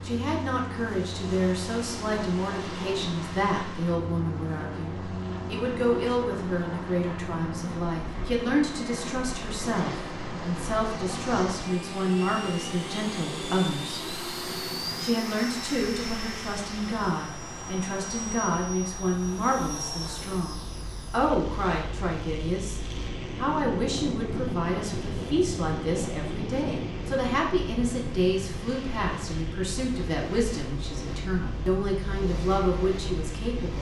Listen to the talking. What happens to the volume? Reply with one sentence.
The loudness of the talking stays about the same.